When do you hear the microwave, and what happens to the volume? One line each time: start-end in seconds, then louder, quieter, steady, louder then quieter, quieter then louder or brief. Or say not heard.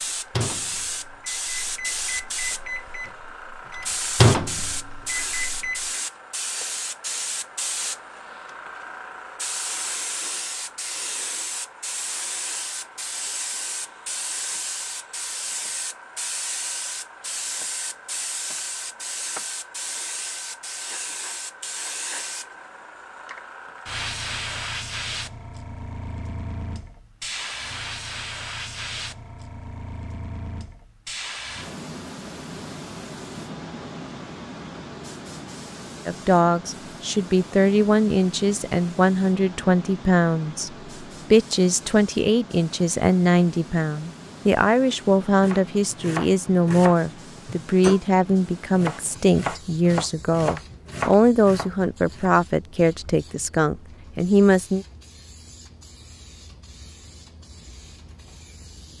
0.3-5.8 louder then quieter.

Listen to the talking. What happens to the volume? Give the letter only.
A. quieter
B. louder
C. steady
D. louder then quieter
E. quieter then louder
C.